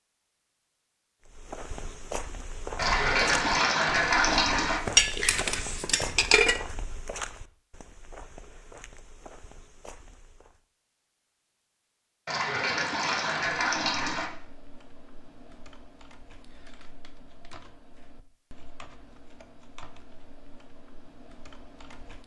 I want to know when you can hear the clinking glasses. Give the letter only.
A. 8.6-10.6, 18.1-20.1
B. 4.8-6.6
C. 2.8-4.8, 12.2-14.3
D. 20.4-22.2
B.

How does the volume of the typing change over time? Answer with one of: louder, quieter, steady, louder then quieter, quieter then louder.
steady.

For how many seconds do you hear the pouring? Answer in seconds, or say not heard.
4 s.